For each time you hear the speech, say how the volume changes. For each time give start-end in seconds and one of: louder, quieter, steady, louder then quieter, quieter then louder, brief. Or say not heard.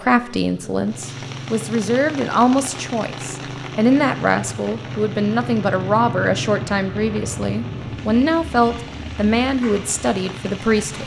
0.0-11.0 steady.